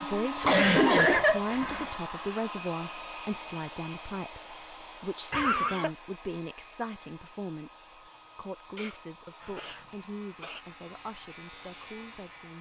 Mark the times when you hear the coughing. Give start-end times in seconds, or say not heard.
0.4-1.9, 5.3-5.9, 8.8-10.6.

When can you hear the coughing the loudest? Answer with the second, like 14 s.
1 s.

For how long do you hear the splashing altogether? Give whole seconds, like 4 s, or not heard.
not heard.